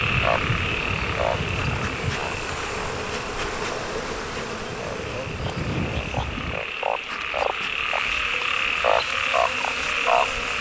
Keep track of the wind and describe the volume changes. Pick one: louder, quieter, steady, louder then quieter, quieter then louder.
quieter then louder.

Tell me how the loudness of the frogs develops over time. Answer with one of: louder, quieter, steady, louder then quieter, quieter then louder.
quieter then louder.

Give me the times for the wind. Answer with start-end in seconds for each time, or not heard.
0.0-6.7.